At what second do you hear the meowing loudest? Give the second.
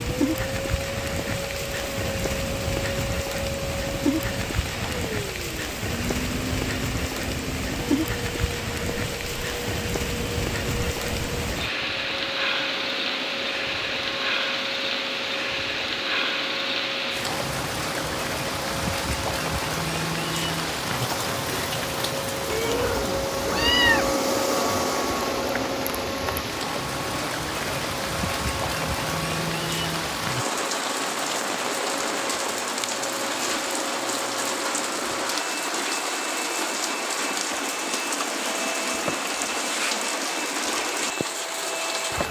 24 s.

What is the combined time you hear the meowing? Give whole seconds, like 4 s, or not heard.
2 s.